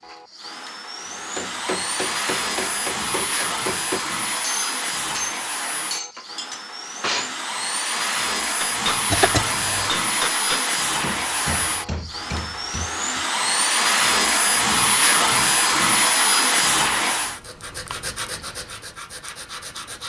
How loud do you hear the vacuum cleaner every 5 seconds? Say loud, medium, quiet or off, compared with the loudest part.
medium, medium, loud, loud.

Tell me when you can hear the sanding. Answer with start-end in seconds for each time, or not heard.
17.1-20.0.